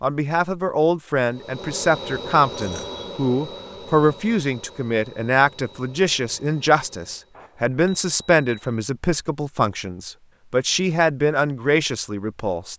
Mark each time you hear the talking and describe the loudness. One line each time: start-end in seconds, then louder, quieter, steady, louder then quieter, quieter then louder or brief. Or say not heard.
0.0-12.7 steady.